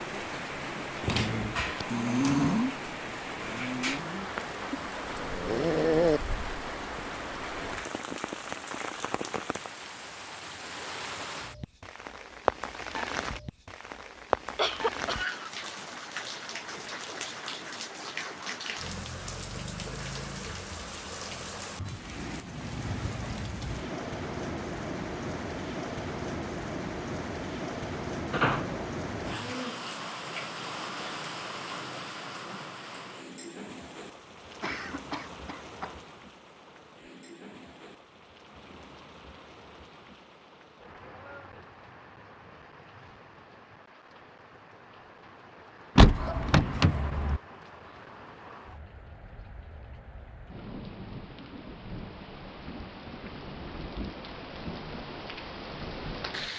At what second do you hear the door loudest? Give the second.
46 s.